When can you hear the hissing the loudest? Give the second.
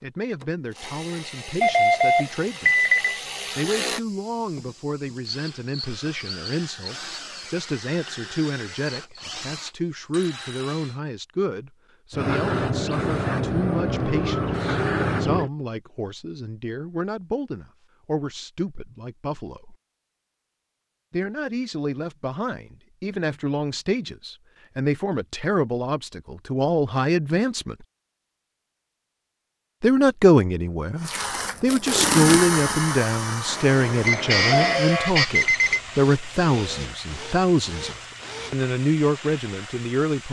15 s.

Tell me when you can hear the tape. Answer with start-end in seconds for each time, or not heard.
31.1-32.8.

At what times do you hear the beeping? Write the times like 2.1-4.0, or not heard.
1.6-3.2, 34.0-35.8.